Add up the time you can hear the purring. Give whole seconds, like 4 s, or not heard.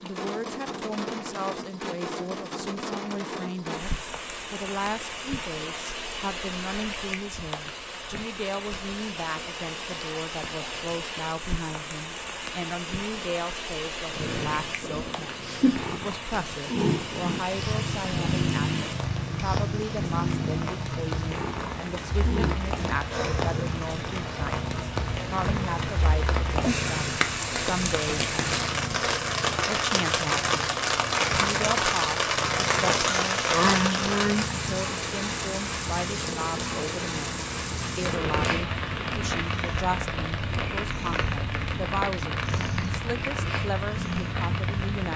31 s.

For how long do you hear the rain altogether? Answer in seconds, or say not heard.
45 s.